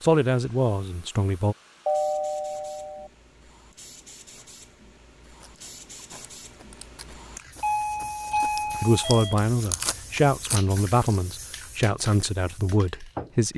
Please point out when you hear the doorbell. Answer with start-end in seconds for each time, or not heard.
1.9-3.1, 7.6-9.3.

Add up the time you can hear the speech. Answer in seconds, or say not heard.
6 s.